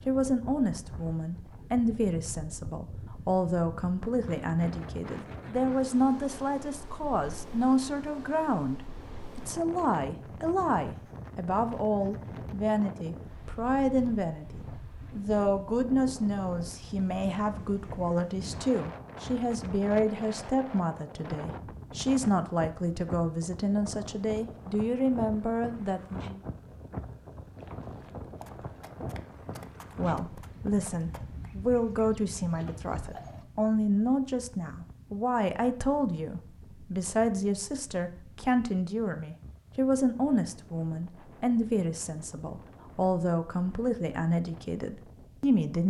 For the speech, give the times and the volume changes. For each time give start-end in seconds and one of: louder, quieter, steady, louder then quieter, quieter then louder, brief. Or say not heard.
0.1-26.4 steady
29.9-45.8 steady.